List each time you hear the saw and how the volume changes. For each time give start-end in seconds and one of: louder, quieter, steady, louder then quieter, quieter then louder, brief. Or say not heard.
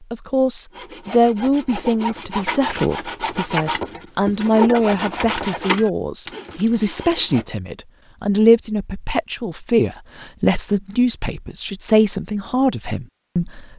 0.7-7.5 louder then quieter.